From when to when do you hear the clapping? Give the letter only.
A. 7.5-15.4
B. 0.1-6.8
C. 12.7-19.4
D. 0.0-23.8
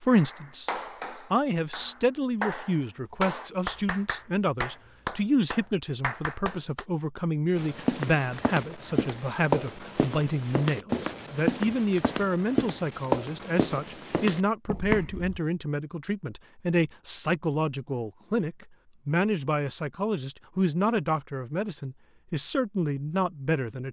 B.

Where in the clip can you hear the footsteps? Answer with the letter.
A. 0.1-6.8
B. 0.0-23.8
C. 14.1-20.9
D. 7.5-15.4
D.